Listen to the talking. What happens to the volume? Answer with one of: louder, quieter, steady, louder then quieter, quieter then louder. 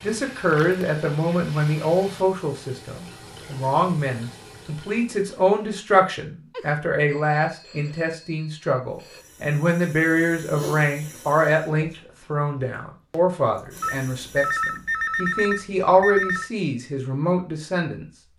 steady.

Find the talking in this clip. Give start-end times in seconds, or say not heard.
0.0-18.1.